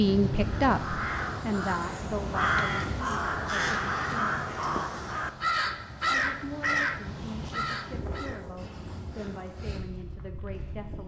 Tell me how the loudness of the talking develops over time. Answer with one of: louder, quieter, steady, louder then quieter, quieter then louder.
quieter.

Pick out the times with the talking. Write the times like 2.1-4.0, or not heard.
0.0-4.3, 6.0-11.0.